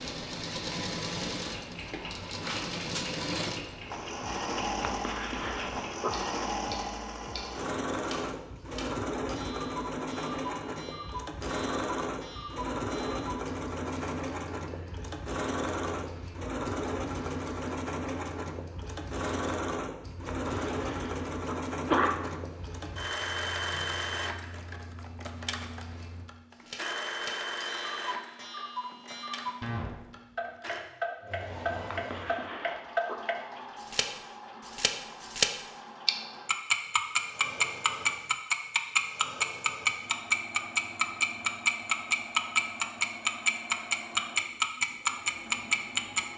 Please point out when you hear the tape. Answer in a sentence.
You can't hear the tape here.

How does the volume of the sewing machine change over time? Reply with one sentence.
The volume of the sewing machine goes down.